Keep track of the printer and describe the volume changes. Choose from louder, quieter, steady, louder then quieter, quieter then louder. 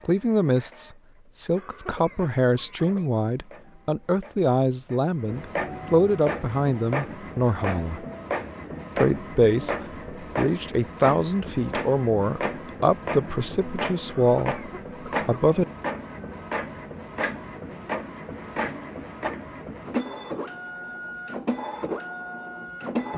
louder.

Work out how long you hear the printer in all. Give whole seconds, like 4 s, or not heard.
23 s.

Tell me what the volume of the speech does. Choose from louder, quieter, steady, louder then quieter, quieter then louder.
steady.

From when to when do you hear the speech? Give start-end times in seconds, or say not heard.
0.1-8.1, 8.9-15.7.